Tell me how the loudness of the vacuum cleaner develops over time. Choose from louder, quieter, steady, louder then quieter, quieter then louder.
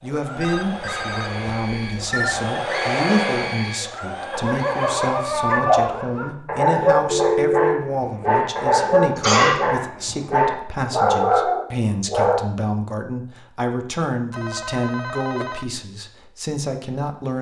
louder then quieter.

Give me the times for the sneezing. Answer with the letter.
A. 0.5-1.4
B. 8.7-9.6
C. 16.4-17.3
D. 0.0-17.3
B.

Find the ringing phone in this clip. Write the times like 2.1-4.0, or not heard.
0.4-2.5, 7.0-7.8, 14.3-15.7.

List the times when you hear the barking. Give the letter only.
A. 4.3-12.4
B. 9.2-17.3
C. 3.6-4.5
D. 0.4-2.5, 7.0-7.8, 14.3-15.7
A.